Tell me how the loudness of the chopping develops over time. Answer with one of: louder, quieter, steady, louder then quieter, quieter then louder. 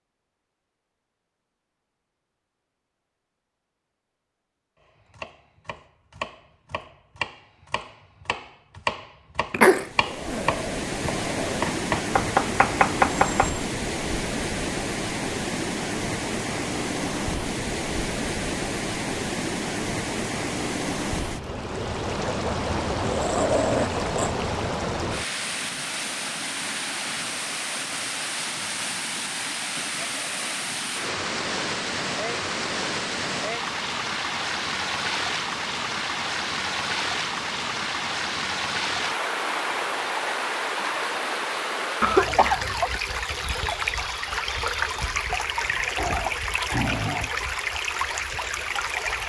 louder.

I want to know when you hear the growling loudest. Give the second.
24 s.